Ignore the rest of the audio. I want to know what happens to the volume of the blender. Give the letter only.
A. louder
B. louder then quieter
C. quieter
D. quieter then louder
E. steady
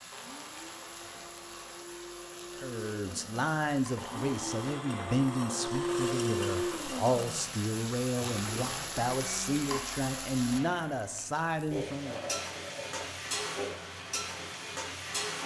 B.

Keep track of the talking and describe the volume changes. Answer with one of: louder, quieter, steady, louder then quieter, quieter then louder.
steady.